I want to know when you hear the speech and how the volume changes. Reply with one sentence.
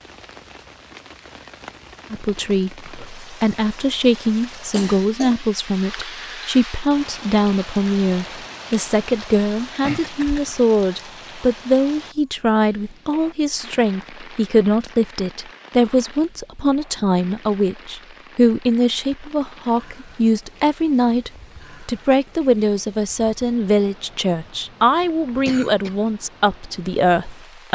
You can hear the speech from 2.1 to 27.6 s, at a steady volume.